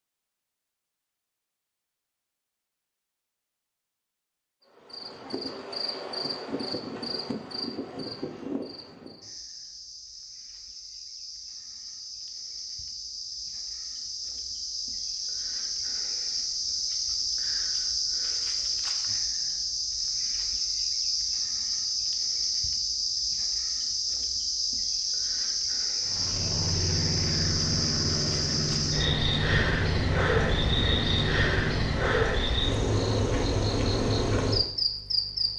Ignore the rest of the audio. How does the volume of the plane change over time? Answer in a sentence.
The loudness of the plane stays about the same.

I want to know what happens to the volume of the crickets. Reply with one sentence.
The loudness of the crickets goes up.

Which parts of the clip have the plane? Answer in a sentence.
The plane can be heard from 26.0 to 32.1 s.